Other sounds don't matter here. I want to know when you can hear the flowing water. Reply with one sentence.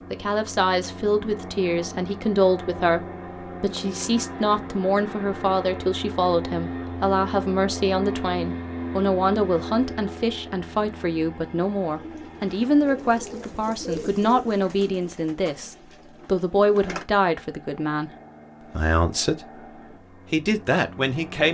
The flowing water can't be heard in this clip.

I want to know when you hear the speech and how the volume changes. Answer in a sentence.
The speech can be heard from 0.1 to 21.5 s, at a steady volume.